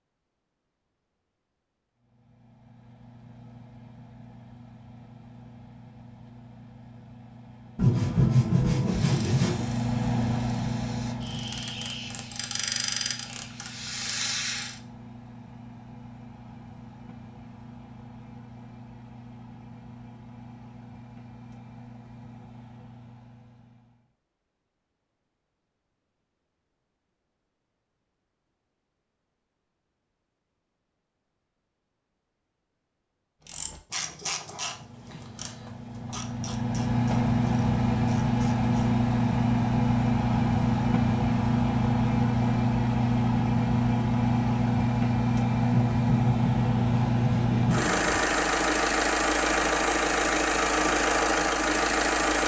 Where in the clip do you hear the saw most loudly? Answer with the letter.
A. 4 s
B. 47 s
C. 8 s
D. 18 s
C.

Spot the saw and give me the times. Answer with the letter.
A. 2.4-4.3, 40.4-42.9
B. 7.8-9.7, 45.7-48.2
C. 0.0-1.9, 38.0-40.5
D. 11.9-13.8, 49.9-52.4
B.